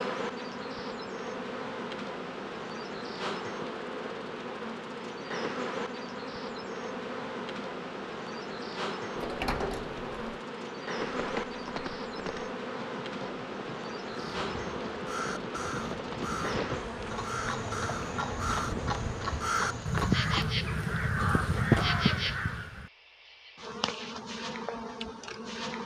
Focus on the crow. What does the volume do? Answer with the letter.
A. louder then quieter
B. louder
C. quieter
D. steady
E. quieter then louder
B.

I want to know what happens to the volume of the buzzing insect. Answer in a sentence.
The loudness of the buzzing insect stays about the same.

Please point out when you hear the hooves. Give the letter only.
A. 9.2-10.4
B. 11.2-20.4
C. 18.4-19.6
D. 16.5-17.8
B.